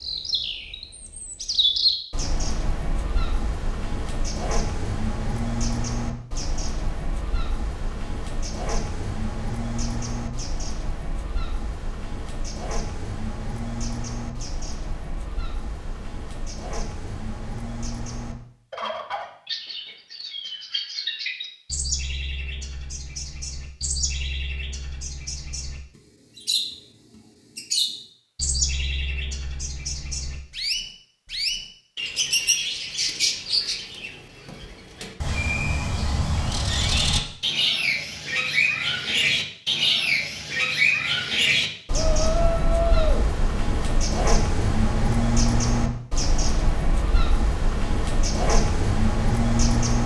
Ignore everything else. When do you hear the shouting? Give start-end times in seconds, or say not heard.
41.9-43.3.